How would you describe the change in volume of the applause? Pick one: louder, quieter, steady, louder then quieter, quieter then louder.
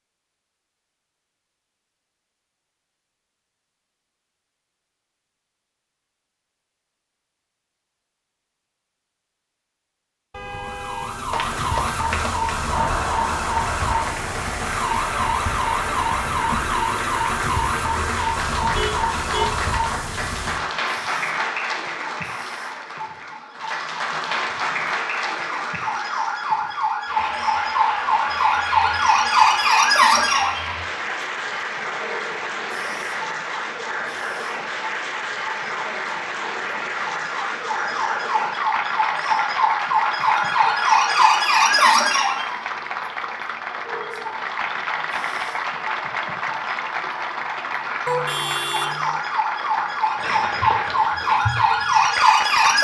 steady.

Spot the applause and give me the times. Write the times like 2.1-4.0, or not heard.
11.3-52.8.